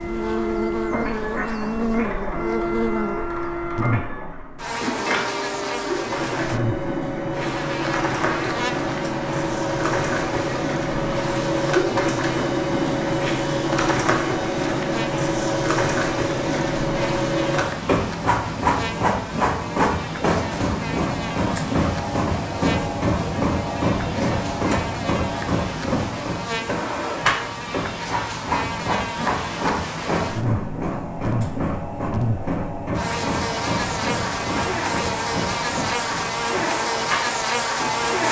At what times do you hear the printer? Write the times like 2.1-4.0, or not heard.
0.0-38.2.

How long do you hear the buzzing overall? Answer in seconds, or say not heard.
38 s.